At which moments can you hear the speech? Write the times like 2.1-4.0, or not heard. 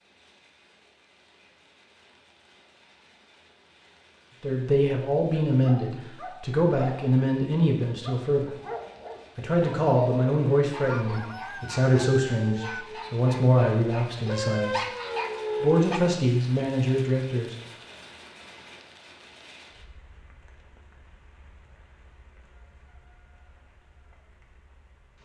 4.4-8.5, 9.3-14.8, 15.6-17.6.